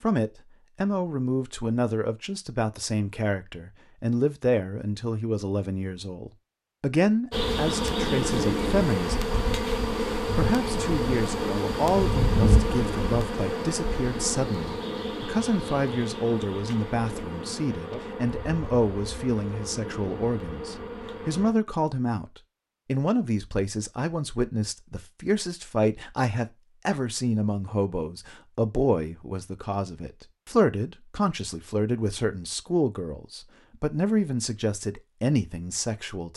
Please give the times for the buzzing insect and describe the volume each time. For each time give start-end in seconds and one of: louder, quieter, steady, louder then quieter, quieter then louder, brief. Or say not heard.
7.3-21.6 quieter.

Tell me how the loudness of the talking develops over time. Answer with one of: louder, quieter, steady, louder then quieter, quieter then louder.
steady.